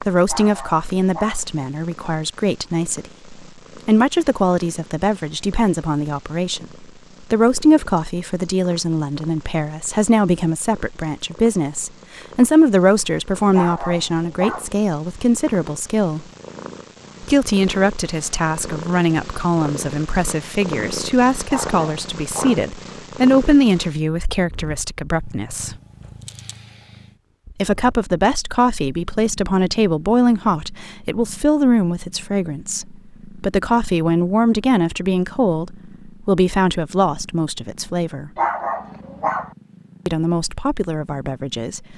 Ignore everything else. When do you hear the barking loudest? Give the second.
39 s.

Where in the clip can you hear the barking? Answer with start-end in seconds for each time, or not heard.
0.2-1.4, 13.5-14.7, 21.4-22.6, 38.4-39.5.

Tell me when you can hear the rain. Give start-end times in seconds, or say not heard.
not heard.